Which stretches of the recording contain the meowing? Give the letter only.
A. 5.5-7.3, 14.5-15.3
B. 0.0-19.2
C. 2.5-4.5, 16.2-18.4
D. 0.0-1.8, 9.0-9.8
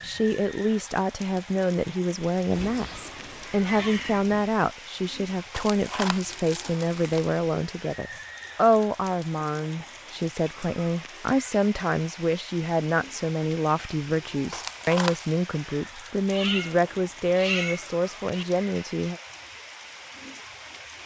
C.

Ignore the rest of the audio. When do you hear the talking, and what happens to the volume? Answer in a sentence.
You can hear the talking from 0.0 to 19.2 s, at a steady volume.